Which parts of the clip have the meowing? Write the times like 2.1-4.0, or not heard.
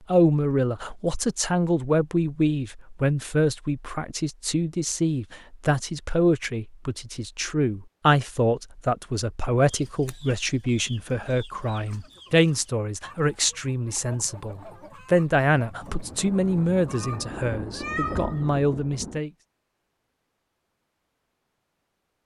16.9-18.4.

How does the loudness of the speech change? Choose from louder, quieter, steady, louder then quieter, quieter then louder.
steady.